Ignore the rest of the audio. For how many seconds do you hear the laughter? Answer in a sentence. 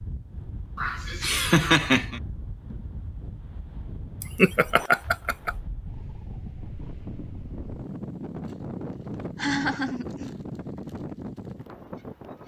You can hear the laughter for 4 seconds altogether.